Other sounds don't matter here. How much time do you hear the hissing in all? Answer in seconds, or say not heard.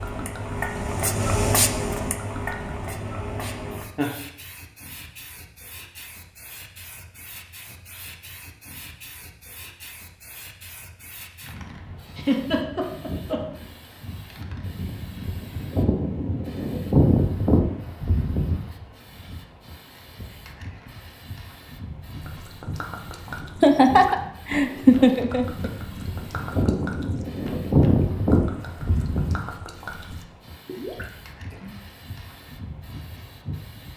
34 s.